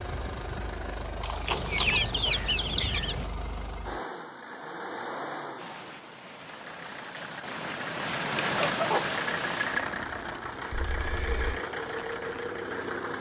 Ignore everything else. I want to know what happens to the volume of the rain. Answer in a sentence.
The volume of the rain goes up, then down.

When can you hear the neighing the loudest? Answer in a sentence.
The volume of the neighing peaks at 2 seconds.